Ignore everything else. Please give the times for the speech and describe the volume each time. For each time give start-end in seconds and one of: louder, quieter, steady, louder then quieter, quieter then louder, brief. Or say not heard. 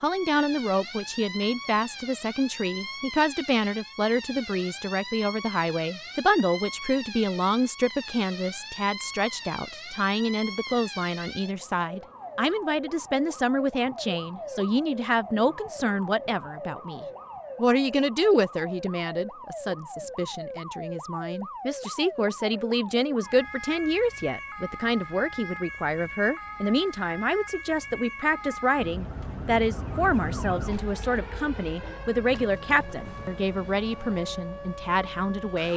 0.0-35.7 steady.